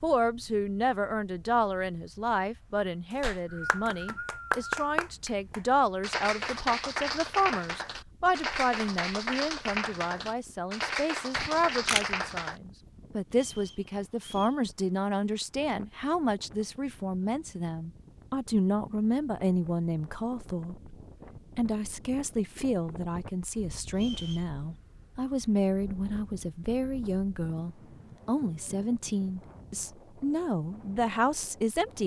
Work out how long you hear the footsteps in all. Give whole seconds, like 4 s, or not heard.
not heard.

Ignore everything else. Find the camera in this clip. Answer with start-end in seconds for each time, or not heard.
11.3-12.1.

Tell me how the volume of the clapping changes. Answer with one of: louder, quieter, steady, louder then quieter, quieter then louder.
steady.